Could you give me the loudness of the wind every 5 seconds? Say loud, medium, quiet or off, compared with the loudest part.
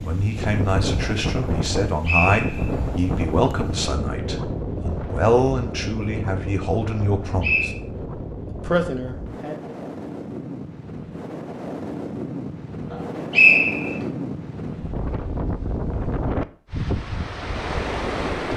loud, medium, loud, loud.